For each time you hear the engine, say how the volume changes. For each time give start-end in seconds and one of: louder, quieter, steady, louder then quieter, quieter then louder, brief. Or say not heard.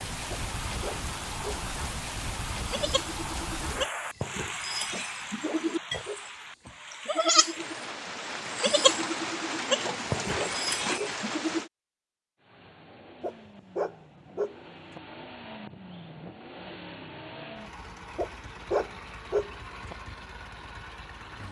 12.3-21.4 louder.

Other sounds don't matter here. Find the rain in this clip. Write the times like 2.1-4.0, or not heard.
0.0-11.7.